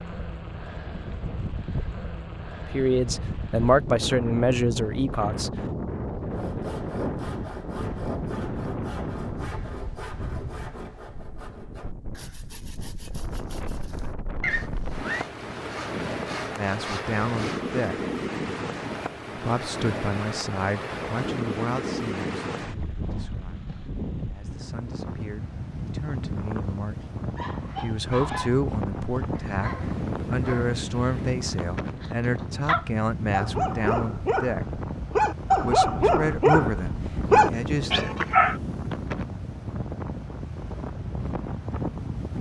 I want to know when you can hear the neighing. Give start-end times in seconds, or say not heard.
14.4-15.2.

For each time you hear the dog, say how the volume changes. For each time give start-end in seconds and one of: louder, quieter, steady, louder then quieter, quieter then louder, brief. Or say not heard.
27.0-38.6 louder.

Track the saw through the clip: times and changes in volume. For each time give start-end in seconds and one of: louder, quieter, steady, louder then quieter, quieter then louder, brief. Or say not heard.
6.3-17.8 quieter then louder.